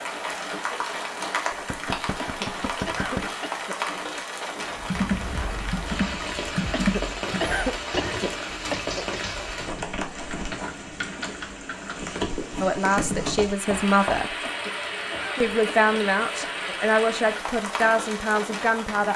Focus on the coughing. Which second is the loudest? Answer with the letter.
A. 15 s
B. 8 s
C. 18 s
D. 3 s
B.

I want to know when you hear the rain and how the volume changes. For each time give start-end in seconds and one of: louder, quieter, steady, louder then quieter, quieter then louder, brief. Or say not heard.
0.0-19.1 steady.